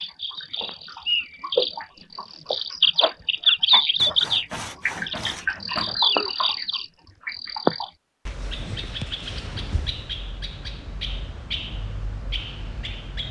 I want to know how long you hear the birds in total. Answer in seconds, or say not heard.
13 s.